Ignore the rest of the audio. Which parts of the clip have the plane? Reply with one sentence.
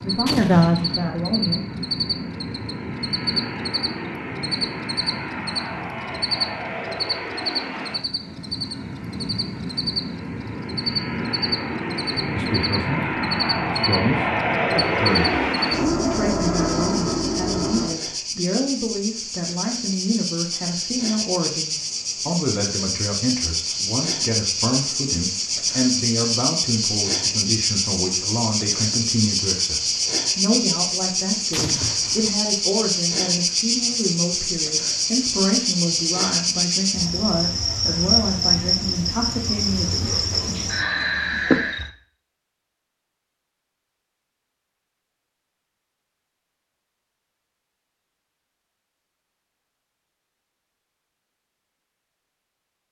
You can hear the plane from 0.0 to 17.9 s.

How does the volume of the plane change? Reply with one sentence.
The volume of the plane goes up.